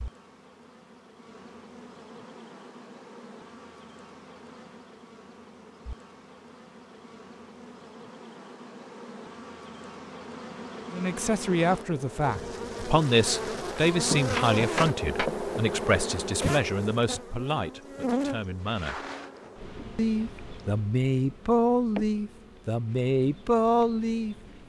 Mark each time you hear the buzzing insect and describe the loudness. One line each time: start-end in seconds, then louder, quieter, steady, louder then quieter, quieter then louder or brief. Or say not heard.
0.0-24.6 louder then quieter.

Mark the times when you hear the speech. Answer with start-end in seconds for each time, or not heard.
10.9-19.1, 19.9-24.4.